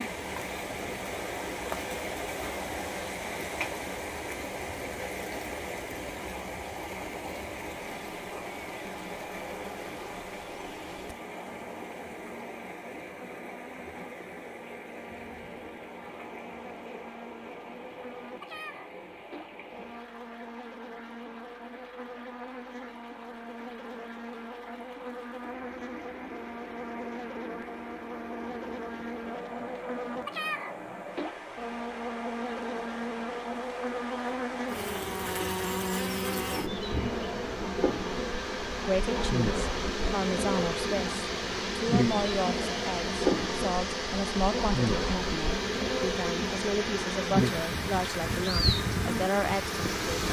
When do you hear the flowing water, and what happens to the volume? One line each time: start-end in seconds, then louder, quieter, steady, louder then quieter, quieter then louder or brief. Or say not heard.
0.0-50.2 quieter then louder.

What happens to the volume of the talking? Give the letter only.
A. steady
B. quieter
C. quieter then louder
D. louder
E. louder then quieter
A.